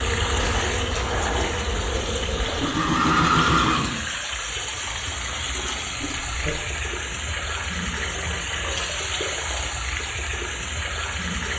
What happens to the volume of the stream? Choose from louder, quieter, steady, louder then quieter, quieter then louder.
steady.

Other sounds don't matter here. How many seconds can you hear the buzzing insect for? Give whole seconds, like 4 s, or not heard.
3 s.